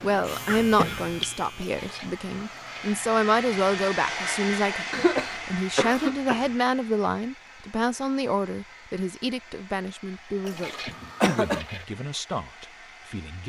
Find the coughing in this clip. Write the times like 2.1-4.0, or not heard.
0.5-1.2, 4.9-6.5, 10.8-11.6.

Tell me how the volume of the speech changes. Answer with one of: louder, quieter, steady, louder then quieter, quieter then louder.
quieter.